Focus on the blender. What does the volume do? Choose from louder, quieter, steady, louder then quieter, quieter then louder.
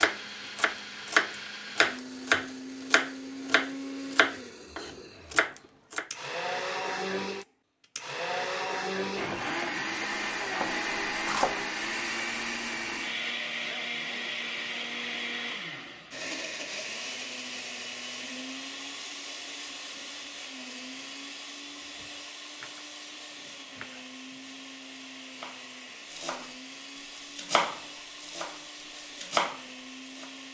louder then quieter.